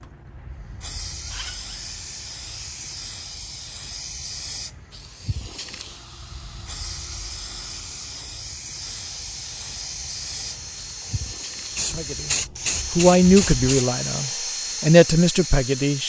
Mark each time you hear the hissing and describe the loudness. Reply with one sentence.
The hissing can be heard from 0.0 to 13.8 s, getting louder.